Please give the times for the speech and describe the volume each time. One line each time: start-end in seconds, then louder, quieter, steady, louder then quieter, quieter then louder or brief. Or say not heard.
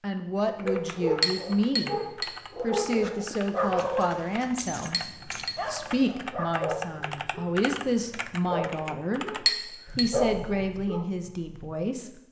0.0-12.2 steady.